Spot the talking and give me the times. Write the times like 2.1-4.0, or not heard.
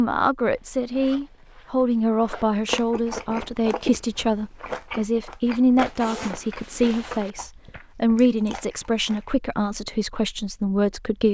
0.0-11.2.